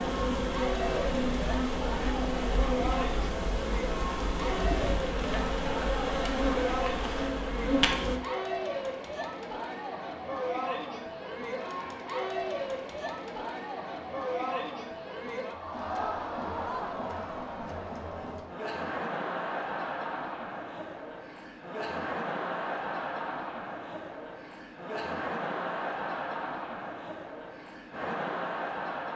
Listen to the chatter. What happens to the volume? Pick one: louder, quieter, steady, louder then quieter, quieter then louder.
steady.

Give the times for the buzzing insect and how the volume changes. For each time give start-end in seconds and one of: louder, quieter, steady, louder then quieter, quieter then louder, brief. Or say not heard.
0.0-8.2 steady.